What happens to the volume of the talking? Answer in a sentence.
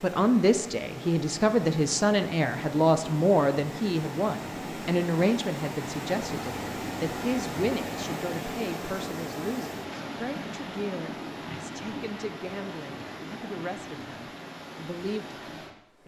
The loudness of the talking goes down.